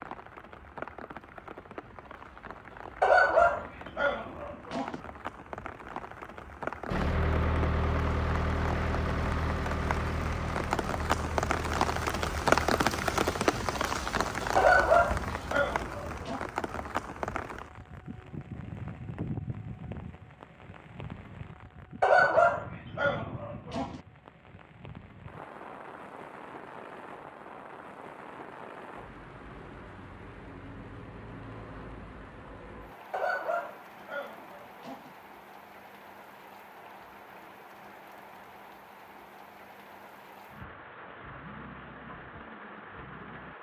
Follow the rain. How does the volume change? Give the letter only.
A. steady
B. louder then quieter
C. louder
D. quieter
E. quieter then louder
B.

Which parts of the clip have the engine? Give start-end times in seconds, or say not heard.
6.8-13.2.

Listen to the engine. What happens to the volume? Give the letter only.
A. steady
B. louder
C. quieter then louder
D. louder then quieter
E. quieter
E.